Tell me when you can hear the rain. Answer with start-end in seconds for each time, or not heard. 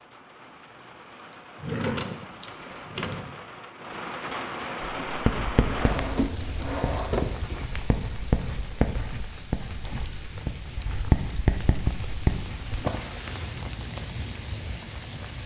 0.0-15.4.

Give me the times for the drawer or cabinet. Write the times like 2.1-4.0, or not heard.
1.6-3.4, 5.7-7.7, 12.7-13.8.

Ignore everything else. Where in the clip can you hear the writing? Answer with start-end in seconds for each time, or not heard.
5.0-12.7.